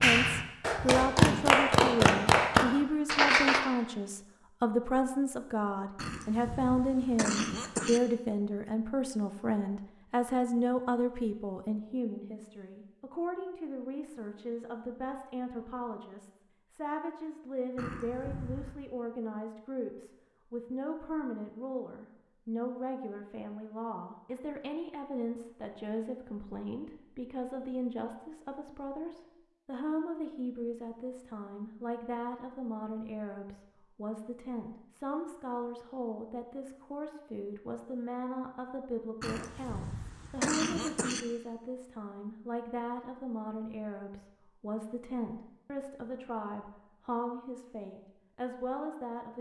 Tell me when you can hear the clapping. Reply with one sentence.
The clapping can be heard from 0.0 to 3.6 s.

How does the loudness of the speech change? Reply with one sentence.
The loudness of the speech goes down.